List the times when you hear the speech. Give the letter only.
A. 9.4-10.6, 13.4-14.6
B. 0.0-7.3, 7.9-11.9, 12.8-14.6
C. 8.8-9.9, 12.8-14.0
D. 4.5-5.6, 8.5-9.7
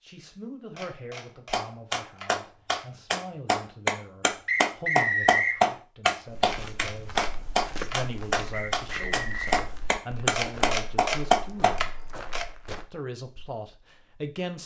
B.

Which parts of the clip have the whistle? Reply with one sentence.
The whistle can be heard from 4.5 to 5.6 s and from 8.5 to 9.7 s.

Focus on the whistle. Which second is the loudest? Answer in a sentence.
The loudest moment of the whistle is at 5 seconds.